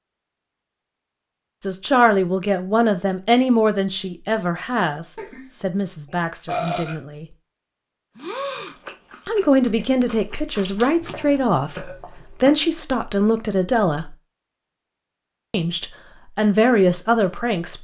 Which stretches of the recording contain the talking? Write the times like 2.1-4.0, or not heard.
1.6-7.2, 9.2-14.2, 15.5-17.7.